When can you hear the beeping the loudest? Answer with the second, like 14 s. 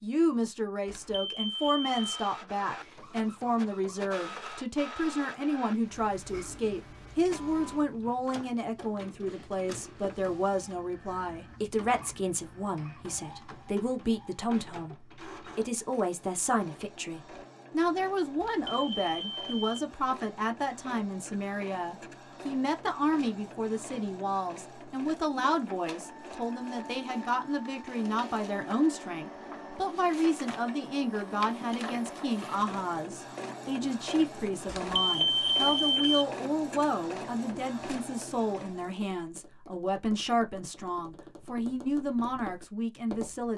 35 s.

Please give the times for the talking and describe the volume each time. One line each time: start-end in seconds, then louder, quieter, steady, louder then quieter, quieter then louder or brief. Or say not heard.
0.0-43.5 steady.